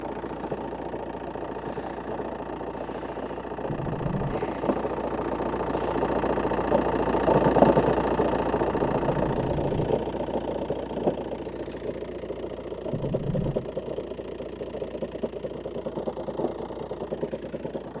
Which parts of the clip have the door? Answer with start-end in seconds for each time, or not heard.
3.6-4.4, 8.7-9.9, 12.9-13.7.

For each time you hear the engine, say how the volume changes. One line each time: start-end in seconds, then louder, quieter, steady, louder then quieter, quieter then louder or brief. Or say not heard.
0.0-17.9 louder then quieter.